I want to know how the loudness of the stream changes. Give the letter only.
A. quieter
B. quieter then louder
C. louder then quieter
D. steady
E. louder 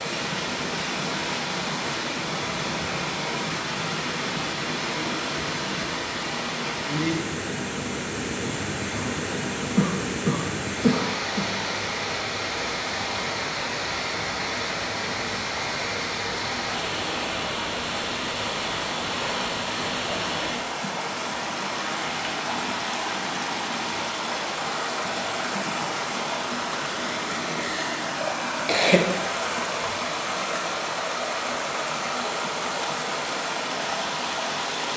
D.